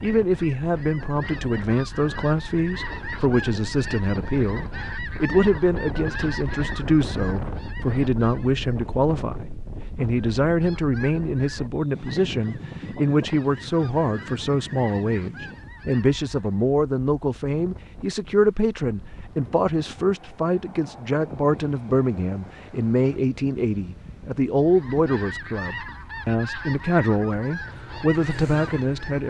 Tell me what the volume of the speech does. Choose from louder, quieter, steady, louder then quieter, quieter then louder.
steady.